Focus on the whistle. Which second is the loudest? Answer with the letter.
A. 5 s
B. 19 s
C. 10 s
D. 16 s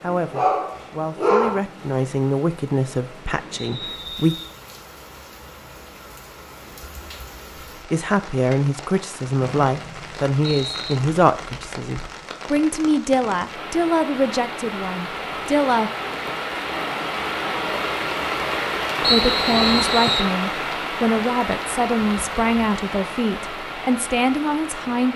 B.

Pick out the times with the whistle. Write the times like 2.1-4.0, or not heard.
3.5-4.2, 9.4-11.0, 19.0-20.3.